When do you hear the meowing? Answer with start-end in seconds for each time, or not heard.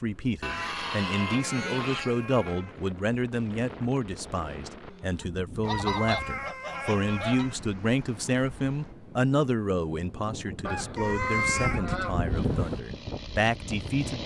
1.1-2.8, 5.6-7.5, 10.9-11.8.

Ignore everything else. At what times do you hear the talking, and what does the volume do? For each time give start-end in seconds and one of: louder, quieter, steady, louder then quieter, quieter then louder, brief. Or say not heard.
0.0-14.2 steady.